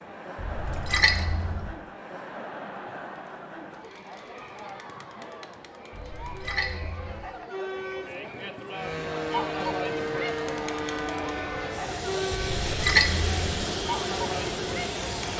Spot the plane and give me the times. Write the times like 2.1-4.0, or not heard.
8.7-15.3.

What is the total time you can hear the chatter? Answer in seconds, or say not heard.
15 s.